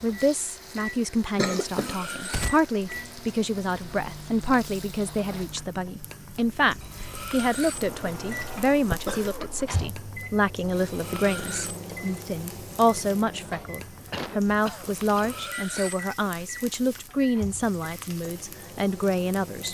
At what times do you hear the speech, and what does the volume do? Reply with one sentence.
You can hear the speech from 0.0 to 19.7 s, at a steady volume.